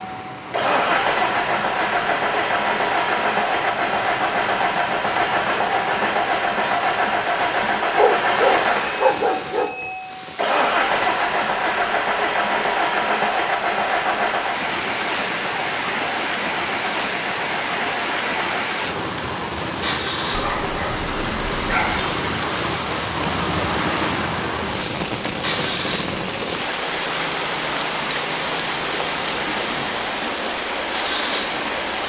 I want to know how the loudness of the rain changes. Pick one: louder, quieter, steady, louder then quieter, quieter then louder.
louder.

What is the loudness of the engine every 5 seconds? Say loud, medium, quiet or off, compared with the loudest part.
loud, loud, loud, medium, medium, medium, medium.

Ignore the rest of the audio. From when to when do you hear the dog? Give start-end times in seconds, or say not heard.
8.0-9.8, 20.3-22.1.